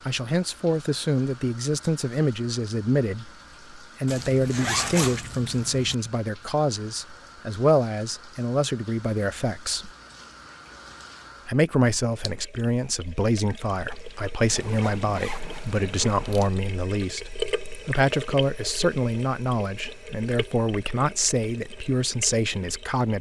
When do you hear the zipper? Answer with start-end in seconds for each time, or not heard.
4.0-6.0, 14.4-16.5.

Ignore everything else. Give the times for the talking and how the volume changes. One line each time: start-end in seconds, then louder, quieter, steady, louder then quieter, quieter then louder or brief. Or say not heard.
0.1-9.9 steady
11.4-23.1 steady.